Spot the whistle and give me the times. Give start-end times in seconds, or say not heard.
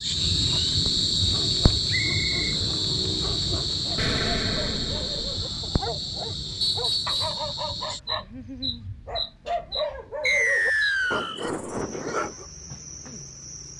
1.9-2.5, 6.6-7.4, 10.2-11.3.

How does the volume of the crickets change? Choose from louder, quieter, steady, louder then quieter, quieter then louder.
quieter.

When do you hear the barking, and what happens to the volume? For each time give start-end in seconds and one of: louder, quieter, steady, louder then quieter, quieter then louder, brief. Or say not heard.
1.1-12.4 louder.